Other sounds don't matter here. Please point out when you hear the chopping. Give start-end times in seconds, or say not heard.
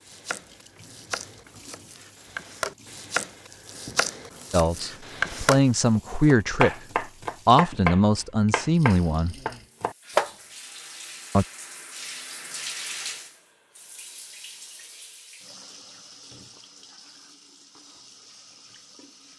0.0-10.3.